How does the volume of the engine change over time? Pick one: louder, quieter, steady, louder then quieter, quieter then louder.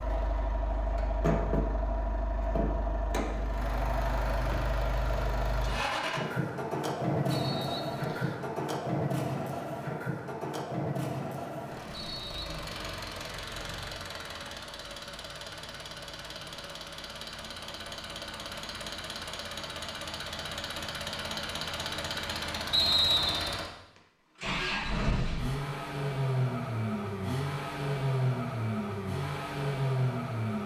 quieter then louder.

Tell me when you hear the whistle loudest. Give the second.
23 s.